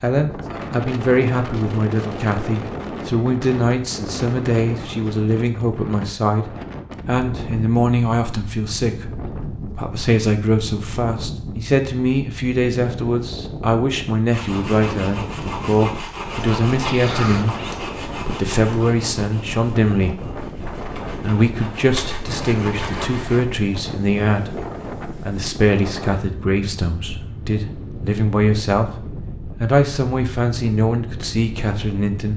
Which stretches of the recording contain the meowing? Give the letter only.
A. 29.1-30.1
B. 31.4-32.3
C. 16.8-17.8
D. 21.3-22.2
C.